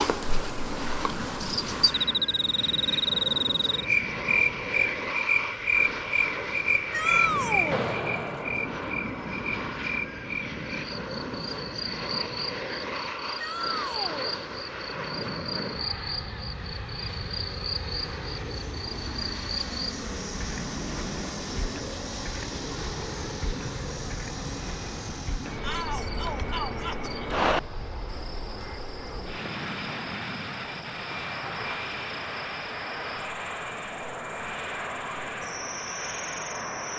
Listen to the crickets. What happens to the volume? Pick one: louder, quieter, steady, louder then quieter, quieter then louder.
quieter.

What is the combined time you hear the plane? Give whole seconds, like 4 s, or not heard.
37 s.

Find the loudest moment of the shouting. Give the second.
7 s.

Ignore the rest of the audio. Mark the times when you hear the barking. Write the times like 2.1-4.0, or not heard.
not heard.